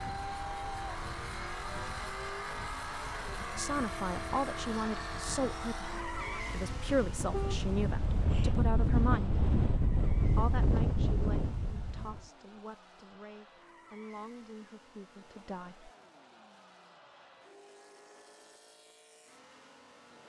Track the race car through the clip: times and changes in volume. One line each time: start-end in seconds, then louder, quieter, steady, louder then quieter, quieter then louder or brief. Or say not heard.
0.0-20.2 quieter.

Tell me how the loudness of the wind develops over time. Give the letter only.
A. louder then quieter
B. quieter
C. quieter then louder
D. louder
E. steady
D.